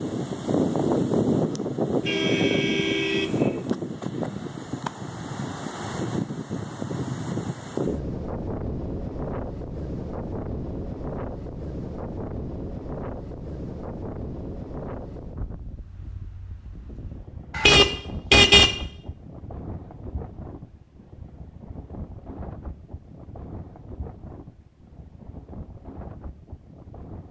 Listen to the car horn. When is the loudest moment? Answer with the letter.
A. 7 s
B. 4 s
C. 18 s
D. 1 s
C.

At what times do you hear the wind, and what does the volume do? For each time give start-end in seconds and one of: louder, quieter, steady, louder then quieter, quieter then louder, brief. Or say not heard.
0.0-27.2 quieter.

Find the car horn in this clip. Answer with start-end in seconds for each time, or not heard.
2.0-3.6, 17.5-18.8.